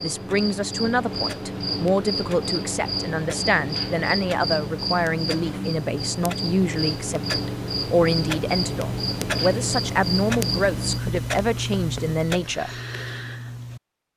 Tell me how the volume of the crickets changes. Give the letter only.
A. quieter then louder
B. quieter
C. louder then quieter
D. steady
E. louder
D.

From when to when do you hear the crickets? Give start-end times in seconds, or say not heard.
0.0-11.0.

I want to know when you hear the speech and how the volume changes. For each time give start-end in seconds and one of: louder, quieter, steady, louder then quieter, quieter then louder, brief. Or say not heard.
0.0-12.8 steady.